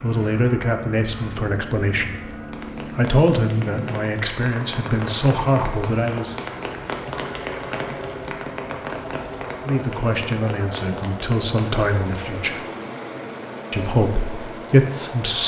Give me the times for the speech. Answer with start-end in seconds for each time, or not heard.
0.0-6.5, 9.6-12.6, 13.7-15.4.